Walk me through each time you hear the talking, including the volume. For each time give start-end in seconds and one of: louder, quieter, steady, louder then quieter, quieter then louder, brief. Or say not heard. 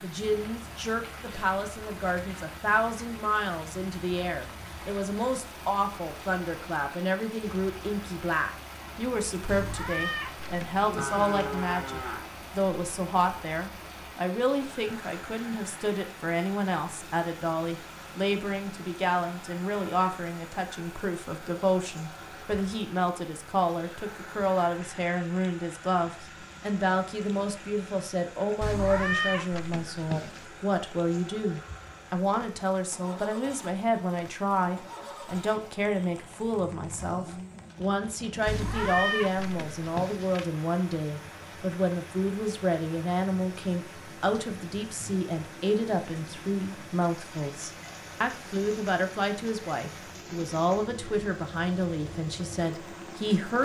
0.0-53.5 steady.